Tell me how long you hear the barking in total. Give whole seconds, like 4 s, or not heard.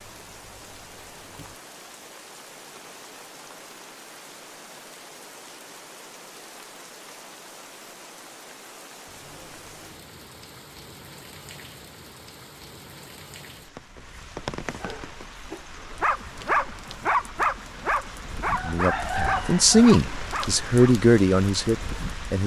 6 s.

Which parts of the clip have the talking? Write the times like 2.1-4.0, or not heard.
18.6-22.4.